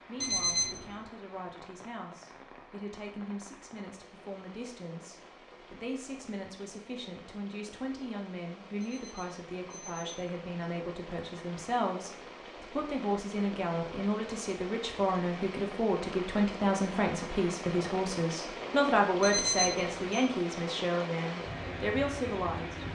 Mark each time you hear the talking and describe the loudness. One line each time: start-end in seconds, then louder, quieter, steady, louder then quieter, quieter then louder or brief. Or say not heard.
0.0-22.8 louder.